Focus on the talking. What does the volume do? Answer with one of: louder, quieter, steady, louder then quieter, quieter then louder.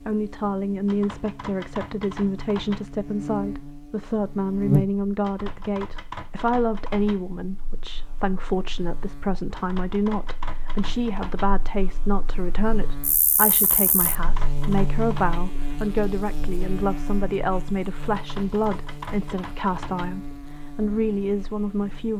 steady.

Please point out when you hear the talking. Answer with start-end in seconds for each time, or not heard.
0.0-22.1.